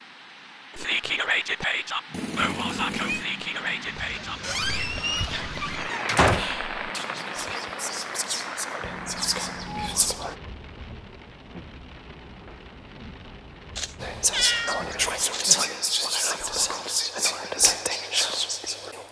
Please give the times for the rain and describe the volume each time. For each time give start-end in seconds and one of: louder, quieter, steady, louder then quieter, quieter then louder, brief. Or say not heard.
0.0-15.3 louder then quieter.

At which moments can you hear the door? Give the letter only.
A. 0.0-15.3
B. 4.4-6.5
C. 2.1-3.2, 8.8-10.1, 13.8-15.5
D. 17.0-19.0
B.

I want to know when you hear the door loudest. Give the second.
6 s.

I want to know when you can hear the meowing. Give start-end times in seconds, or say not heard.
2.1-3.2, 8.8-10.1, 13.8-15.5.